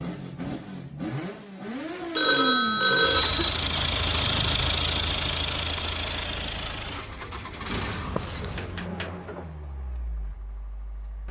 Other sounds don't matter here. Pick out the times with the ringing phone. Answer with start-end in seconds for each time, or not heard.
2.1-3.5, 8.4-9.6.